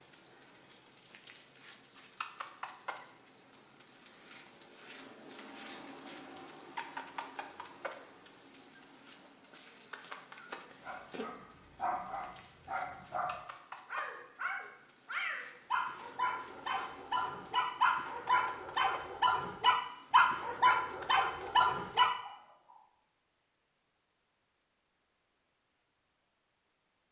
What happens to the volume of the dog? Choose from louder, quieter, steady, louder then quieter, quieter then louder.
louder.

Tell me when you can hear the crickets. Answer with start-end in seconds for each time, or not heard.
0.0-22.1.